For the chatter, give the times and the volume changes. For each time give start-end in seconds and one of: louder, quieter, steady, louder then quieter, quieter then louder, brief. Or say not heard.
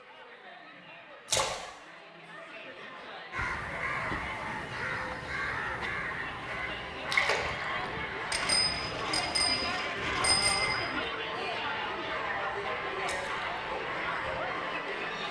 0.0-15.2 louder.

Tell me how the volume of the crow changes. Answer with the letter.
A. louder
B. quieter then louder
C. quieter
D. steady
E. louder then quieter
C.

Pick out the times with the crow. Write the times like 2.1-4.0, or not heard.
3.3-14.7.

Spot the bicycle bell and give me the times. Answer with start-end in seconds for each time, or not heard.
8.3-10.8.